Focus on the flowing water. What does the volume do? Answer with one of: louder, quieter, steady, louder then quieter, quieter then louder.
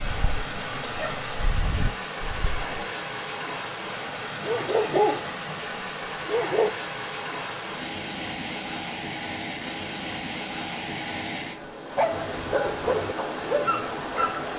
steady.